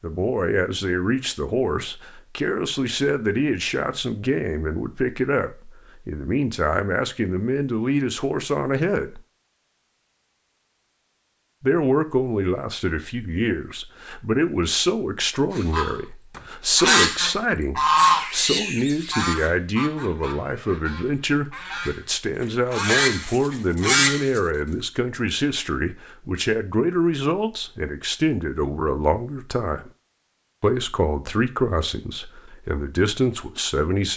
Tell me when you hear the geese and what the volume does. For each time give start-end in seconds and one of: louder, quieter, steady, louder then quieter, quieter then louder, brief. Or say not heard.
15.6-24.4 quieter then louder.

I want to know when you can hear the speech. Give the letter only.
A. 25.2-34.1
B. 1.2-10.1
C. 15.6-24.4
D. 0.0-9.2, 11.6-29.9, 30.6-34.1
D.